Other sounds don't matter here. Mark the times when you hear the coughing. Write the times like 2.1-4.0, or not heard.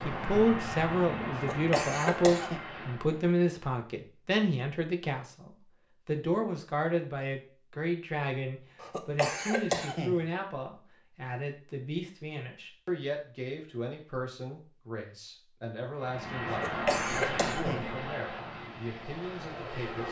1.3-2.6, 8.8-10.2, 16.4-17.9.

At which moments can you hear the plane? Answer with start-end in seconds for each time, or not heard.
0.0-3.4, 15.9-20.0.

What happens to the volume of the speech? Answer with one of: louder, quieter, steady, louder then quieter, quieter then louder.
quieter.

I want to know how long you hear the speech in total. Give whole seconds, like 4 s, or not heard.
20 s.